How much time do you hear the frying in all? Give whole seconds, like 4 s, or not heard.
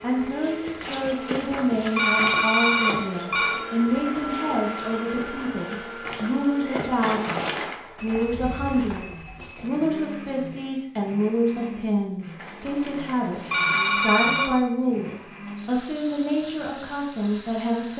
not heard.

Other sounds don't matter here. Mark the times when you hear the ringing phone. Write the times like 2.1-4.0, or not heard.
0.9-3.6, 7.0-7.8, 12.4-14.5.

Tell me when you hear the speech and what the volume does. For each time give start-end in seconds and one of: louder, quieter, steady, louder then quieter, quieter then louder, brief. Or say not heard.
0.0-17.9 steady.